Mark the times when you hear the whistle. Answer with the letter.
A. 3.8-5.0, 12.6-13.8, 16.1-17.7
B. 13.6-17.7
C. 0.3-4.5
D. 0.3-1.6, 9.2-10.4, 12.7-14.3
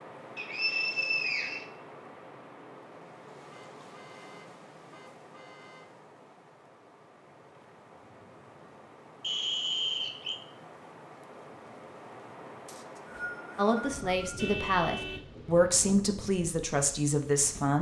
D.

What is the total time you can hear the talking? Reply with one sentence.
You can hear the talking for 4 seconds altogether.